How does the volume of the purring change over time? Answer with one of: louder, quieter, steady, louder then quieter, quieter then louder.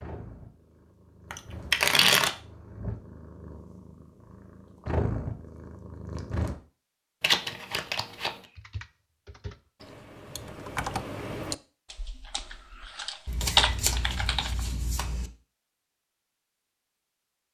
louder.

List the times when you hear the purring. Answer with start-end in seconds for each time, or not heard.
0.0-6.5.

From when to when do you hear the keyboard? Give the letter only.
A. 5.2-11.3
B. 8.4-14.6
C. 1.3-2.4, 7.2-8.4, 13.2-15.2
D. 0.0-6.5
B.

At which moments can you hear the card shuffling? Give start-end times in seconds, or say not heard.
1.3-2.4, 7.2-8.4, 13.2-15.2.